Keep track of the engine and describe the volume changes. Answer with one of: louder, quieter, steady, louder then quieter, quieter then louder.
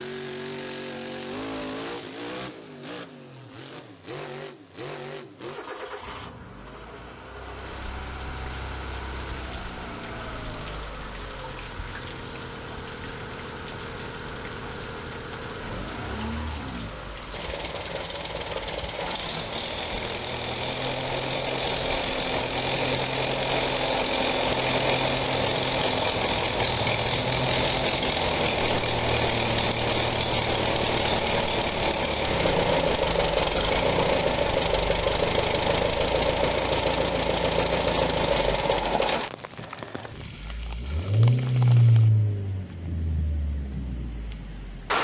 louder.